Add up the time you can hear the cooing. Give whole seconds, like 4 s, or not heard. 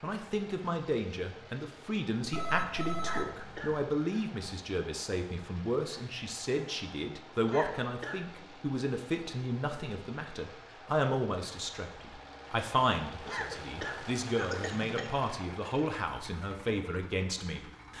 not heard.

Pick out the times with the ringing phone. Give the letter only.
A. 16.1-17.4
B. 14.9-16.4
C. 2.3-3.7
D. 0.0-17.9
C.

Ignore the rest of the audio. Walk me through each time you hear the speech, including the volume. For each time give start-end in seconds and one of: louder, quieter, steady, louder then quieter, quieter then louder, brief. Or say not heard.
0.0-17.9 steady.